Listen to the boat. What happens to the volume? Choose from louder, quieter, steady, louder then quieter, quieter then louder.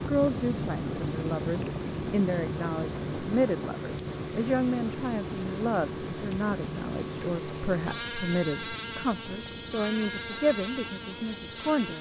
steady.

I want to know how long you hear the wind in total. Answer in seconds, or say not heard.
12 s.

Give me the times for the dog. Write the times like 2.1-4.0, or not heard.
not heard.